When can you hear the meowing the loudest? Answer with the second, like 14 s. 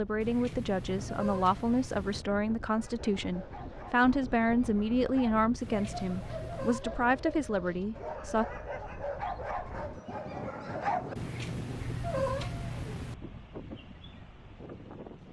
12 s.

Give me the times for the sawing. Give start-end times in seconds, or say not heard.
not heard.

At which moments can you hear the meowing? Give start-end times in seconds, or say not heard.
0.2-2.2, 5.6-6.8, 11.2-13.2.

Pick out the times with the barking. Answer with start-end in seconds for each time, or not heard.
2.8-11.2.